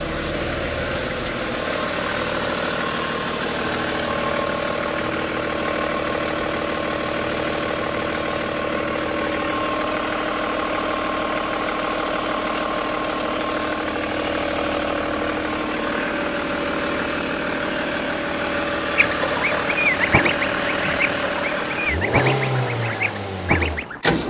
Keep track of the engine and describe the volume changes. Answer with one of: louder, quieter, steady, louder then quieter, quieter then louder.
steady.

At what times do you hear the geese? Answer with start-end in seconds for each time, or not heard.
18.9-24.0.